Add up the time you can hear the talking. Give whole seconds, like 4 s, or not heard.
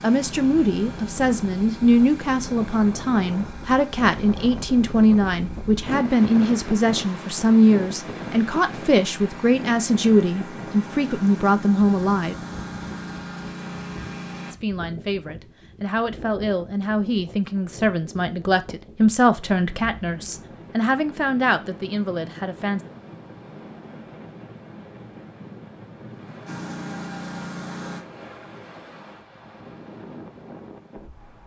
21 s.